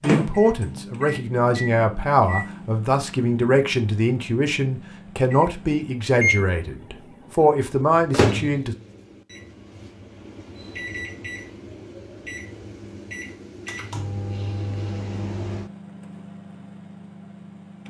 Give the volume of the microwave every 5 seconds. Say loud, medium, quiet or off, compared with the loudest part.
loud, loud, medium, medium.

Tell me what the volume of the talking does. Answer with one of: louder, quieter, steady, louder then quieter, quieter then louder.
steady.